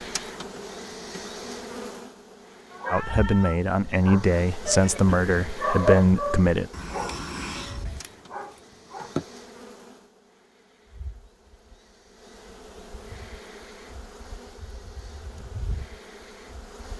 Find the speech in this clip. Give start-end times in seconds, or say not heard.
2.9-6.7.